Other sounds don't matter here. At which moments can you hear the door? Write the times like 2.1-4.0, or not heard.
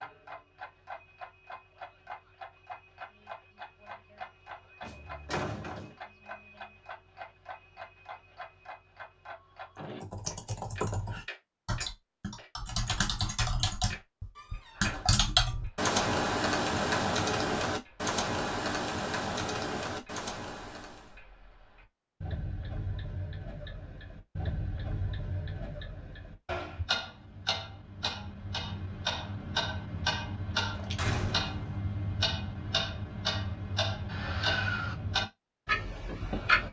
4.8-6.0, 14.3-15.1, 30.9-31.8.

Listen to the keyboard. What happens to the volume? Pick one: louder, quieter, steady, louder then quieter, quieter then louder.
louder then quieter.